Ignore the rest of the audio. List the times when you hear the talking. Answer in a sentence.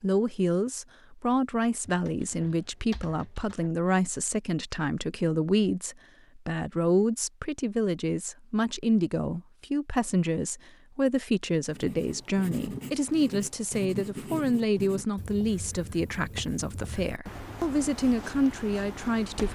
The talking can be heard from 0.0 to 19.4 s.